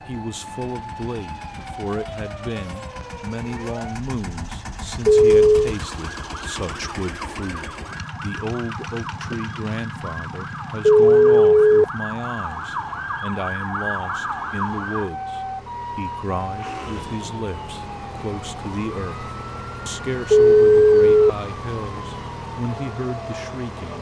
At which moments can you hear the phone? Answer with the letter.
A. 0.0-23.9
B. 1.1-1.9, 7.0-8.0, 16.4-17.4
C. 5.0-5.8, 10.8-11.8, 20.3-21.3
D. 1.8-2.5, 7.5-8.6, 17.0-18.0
C.